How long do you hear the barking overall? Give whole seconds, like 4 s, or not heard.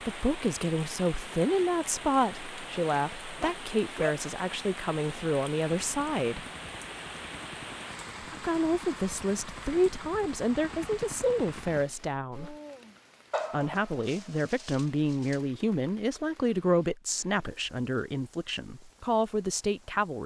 3 s.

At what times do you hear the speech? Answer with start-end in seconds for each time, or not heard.
0.0-6.5, 8.2-12.6, 13.5-20.2.